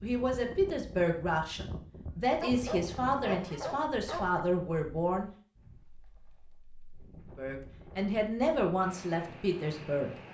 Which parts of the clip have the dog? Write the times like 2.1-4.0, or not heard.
2.4-4.5.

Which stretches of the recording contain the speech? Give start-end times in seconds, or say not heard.
0.0-5.3, 7.3-10.2.